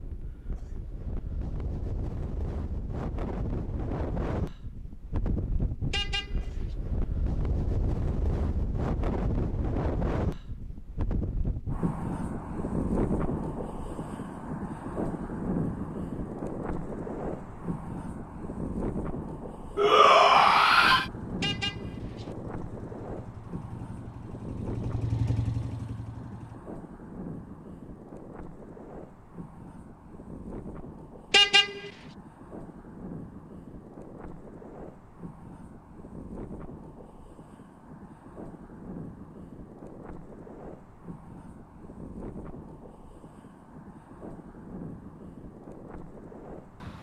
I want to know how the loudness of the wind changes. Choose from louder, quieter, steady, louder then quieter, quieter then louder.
quieter.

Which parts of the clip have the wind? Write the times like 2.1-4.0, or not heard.
0.0-46.9.